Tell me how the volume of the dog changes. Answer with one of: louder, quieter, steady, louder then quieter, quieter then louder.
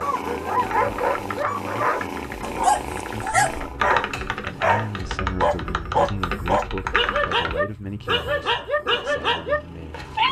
steady.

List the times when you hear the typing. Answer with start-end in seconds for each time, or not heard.
0.7-7.6.